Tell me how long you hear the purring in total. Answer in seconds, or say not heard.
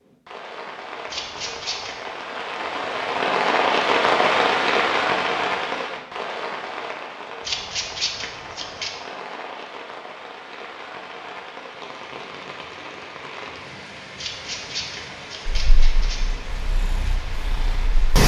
3 s.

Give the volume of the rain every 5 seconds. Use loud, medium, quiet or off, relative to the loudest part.
loud, medium, quiet, quiet.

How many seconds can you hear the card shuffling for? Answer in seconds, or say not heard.
4 s.